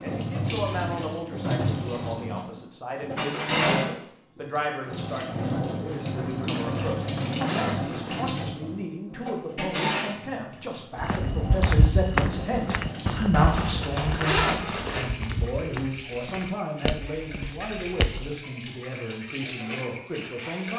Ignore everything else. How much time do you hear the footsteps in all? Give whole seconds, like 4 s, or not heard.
7 s.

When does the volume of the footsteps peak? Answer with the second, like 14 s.
12 s.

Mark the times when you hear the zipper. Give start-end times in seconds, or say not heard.
6.5-8.3, 13.3-15.1.